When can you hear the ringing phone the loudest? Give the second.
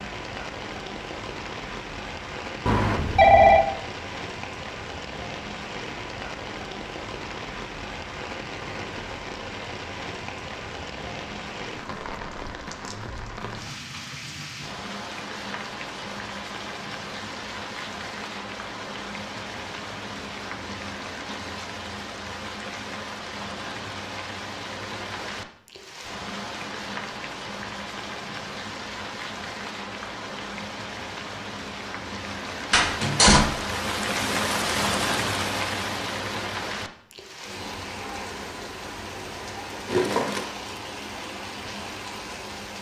3 s.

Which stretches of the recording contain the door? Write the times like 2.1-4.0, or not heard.
32.7-33.5.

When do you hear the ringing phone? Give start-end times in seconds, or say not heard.
2.6-3.6, 39.9-40.5.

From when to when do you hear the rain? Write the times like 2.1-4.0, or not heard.
0.0-42.7.